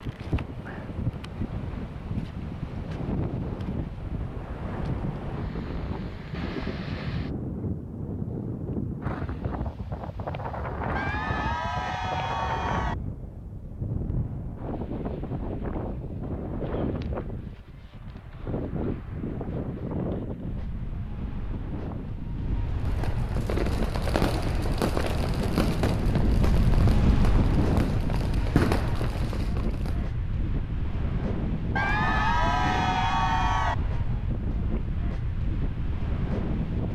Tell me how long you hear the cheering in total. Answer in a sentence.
You can hear the cheering for 4 seconds altogether.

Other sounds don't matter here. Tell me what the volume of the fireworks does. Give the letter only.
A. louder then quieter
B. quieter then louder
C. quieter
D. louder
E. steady
B.